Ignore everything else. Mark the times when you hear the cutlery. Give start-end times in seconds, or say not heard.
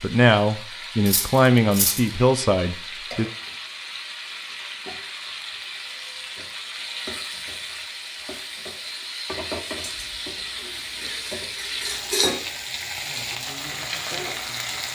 1.1-2.0, 9.8-12.4.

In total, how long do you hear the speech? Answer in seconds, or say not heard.
3 s.